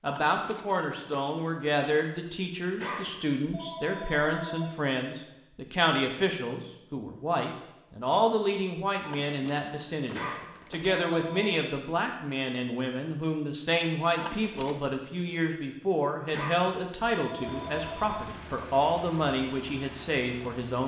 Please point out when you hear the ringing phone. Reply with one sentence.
You can hear the ringing phone from 2.8 to 4.7 s, from 10.1 to 11.6 s and from 16.3 to 18.2 s.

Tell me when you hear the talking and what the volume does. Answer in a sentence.
The talking can be heard from 0.0 to 20.8 s, at a steady volume.